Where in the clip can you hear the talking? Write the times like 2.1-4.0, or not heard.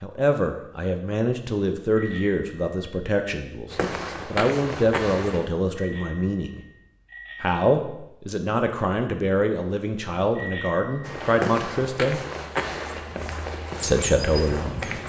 0.0-6.6, 7.4-12.2, 13.8-15.0.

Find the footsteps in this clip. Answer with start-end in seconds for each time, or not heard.
3.7-5.5, 11.0-15.0.